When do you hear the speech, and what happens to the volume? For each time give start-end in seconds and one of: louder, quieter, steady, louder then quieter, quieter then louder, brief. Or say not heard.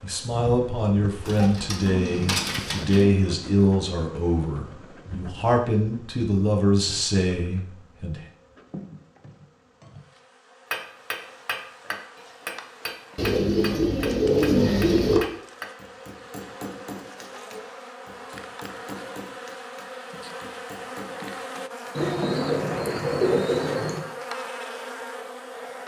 0.0-8.2 steady.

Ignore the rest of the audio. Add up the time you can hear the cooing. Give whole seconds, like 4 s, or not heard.
6 s.